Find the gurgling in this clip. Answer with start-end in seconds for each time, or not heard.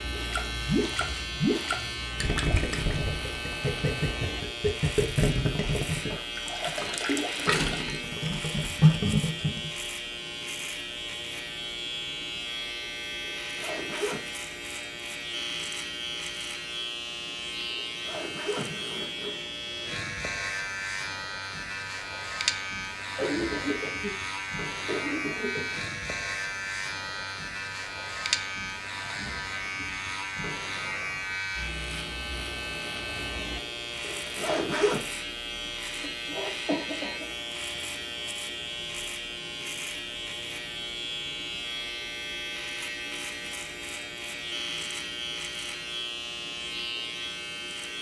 0.1-9.7.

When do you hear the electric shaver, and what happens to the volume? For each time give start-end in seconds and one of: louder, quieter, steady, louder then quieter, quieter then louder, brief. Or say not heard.
0.0-47.9 steady.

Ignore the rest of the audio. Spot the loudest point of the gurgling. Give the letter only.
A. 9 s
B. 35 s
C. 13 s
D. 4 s
A.